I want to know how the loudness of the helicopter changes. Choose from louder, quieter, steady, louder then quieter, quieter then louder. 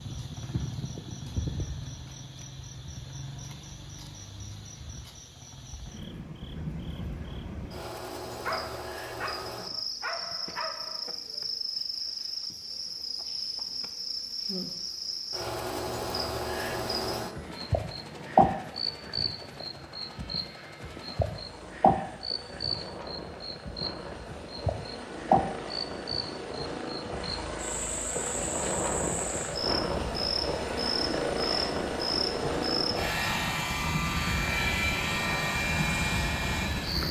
louder.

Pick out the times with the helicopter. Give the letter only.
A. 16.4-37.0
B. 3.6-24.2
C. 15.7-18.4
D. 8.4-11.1
A.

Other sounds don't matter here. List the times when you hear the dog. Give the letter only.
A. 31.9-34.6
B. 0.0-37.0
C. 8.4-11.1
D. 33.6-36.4
C.